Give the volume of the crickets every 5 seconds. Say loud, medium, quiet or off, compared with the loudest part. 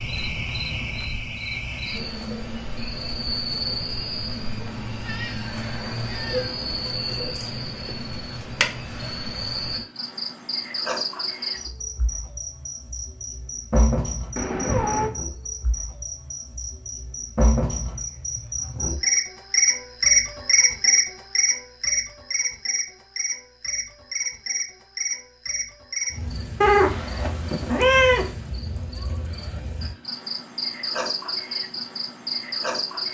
medium, medium, medium, loud, loud, medium, medium.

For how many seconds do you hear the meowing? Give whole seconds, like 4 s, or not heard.
4 s.